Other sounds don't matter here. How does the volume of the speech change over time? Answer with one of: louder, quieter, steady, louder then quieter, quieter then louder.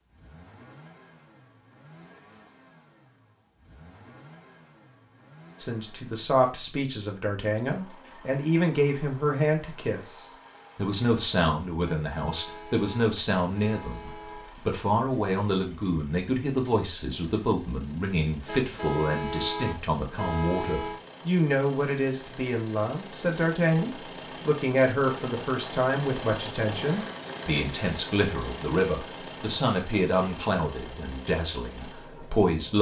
steady.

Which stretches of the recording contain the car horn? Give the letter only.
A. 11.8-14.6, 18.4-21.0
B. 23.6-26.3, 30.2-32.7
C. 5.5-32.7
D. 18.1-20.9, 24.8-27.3
A.